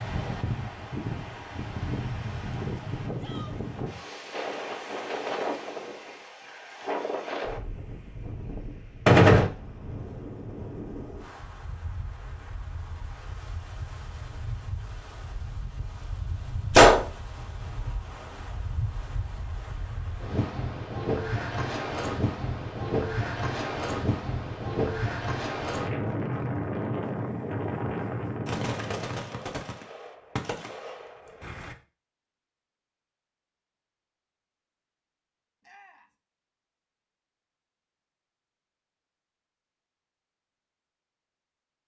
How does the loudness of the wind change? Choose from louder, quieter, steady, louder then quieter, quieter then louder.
quieter then louder.